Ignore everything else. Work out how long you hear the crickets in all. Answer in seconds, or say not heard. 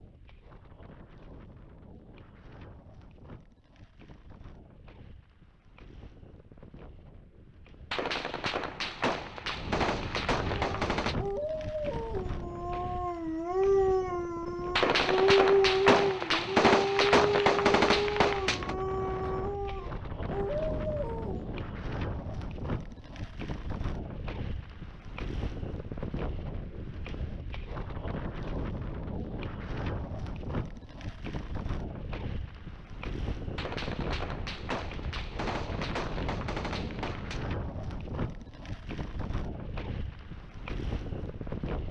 not heard.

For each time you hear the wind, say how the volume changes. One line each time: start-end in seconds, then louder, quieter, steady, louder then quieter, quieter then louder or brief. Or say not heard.
0.0-41.8 louder.